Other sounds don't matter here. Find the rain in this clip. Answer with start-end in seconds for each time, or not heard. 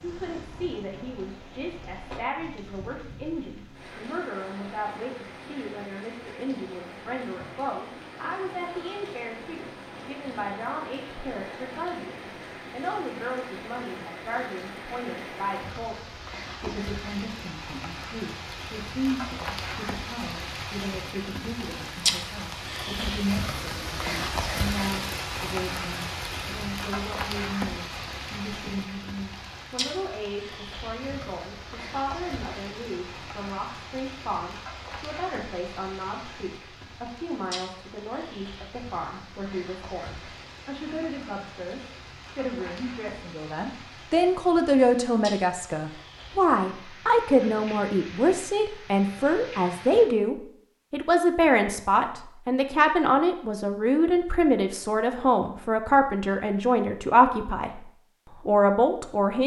0.0-50.0.